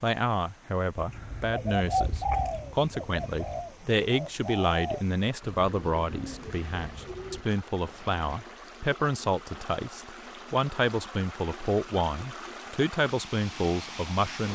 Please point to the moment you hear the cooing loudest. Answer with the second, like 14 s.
2 s.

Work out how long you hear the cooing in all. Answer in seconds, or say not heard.
7 s.